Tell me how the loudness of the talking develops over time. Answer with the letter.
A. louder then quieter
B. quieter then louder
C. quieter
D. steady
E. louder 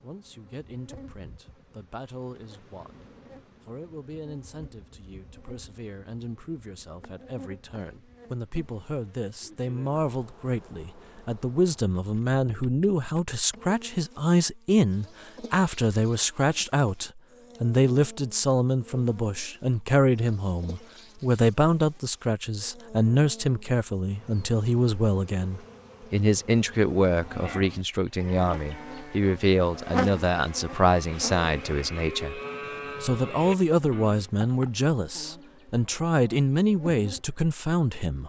E.